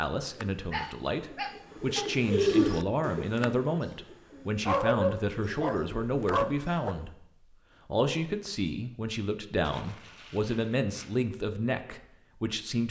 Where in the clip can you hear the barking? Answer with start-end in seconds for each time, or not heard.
0.7-2.1, 4.7-7.0, 9.6-11.2.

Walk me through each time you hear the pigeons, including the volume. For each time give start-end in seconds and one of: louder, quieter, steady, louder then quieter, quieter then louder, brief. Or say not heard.
0.1-7.2 louder then quieter.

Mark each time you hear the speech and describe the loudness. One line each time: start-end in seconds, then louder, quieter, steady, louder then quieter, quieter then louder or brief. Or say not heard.
0.0-12.8 steady.